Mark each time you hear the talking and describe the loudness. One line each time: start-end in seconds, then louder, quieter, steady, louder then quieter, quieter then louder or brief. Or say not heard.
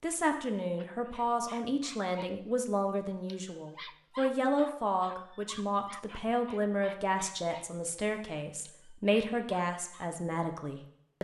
0.0-11.1 steady.